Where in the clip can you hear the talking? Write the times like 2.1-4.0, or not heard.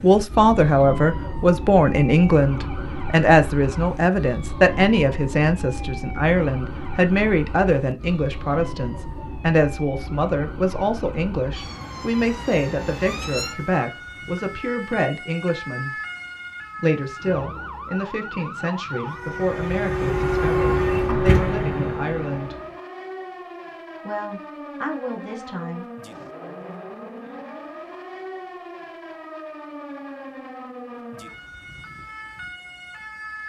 0.0-15.9, 16.8-22.6, 24.1-25.9.